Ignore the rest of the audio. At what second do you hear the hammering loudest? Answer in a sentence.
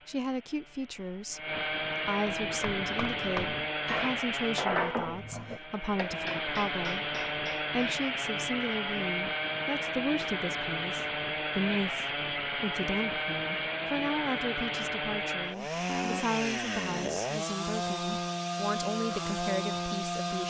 The loudest moment of the hammering is at 5 seconds.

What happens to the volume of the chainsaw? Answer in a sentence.
The loudness of the chainsaw stays about the same.